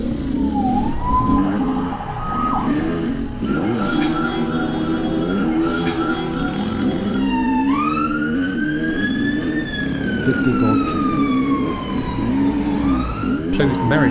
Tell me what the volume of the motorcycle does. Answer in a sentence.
The volume of the motorcycle stays about the same.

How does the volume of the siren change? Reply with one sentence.
The volume of the siren stays about the same.